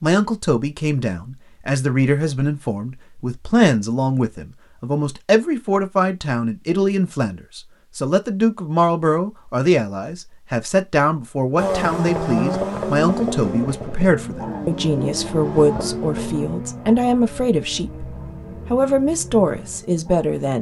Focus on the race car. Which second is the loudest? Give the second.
12 s.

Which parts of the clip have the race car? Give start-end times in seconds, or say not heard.
11.6-20.3.